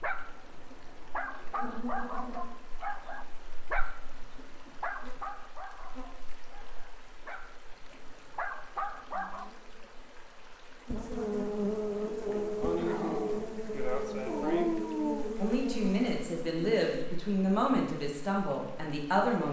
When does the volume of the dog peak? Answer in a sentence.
The loudest moment of the dog is at 15 seconds.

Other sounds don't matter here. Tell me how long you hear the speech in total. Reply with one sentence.
The speech can be heard for 4 seconds in total.